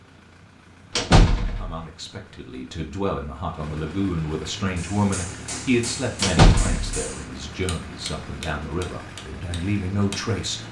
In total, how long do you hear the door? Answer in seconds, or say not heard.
2 s.